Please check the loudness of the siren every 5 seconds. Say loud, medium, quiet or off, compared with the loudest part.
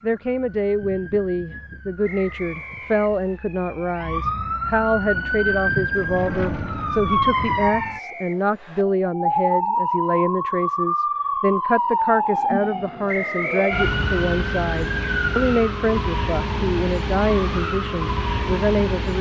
medium, loud, loud, loud.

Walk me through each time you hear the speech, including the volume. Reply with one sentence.
You can hear the speech from 0.0 to 19.1 s, at a steady volume.